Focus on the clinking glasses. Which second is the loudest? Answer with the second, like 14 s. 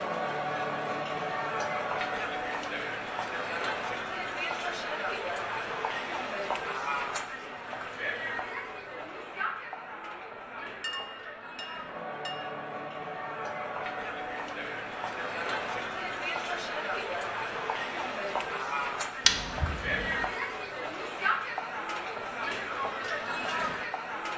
11 s.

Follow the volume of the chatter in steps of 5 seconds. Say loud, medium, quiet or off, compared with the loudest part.
loud, loud, medium, loud, loud.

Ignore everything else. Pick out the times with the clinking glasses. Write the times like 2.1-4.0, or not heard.
10.8-12.6.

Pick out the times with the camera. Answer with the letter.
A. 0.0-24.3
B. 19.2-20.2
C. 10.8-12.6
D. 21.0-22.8
B.